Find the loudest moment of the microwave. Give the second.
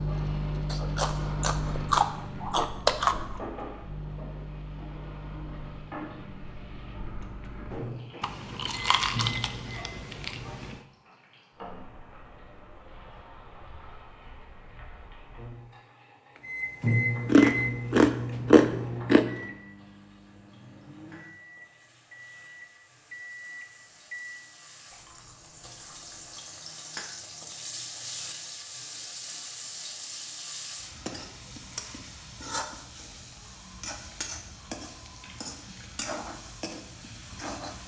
17 s.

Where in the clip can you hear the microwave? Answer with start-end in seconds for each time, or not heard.
0.0-10.0, 16.4-24.5.